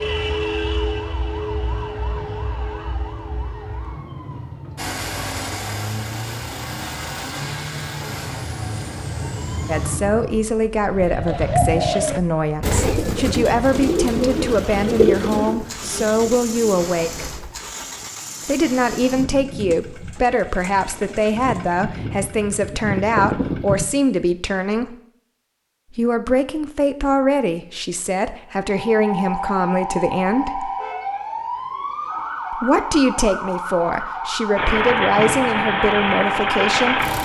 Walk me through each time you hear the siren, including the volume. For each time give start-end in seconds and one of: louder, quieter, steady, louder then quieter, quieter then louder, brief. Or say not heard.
0.0-10.5 quieter then louder
28.6-37.2 steady.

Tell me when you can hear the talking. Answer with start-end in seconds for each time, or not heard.
9.7-17.3, 18.4-24.9, 25.9-30.7, 32.5-37.0.